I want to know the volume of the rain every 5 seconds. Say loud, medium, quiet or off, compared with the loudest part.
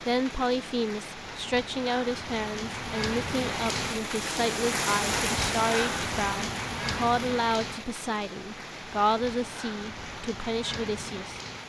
loud, loud, medium.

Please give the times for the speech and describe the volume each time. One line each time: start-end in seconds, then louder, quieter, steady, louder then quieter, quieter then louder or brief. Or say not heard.
0.1-11.4 steady.